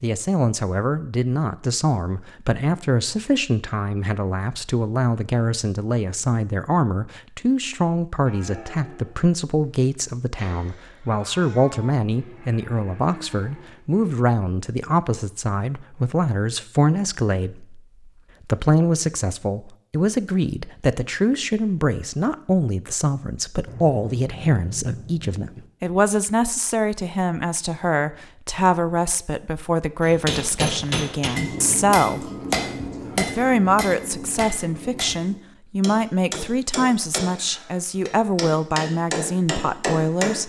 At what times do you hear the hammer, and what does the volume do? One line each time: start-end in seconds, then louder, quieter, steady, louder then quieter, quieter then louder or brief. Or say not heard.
30.1-40.4 quieter then louder.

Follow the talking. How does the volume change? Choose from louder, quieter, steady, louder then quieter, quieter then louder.
steady.